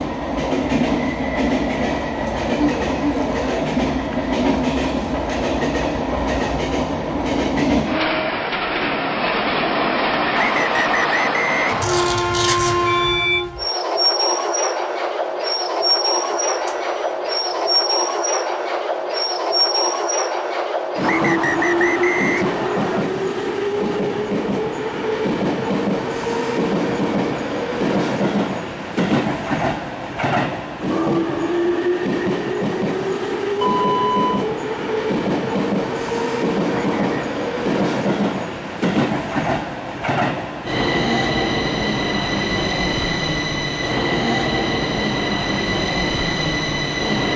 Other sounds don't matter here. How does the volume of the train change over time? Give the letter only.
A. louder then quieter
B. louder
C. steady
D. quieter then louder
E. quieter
C.